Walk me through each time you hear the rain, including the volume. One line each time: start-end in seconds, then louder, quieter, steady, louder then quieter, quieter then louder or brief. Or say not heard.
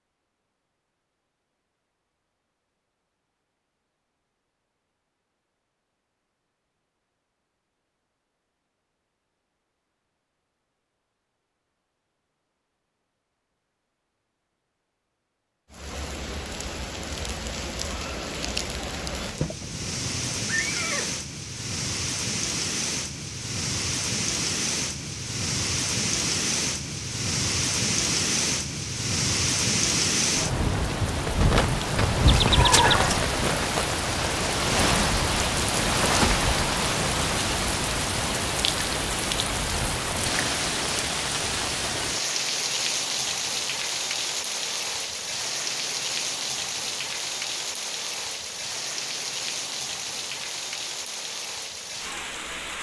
15.7-52.7 louder then quieter.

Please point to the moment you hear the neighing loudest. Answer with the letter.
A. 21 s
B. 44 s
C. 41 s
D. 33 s
D.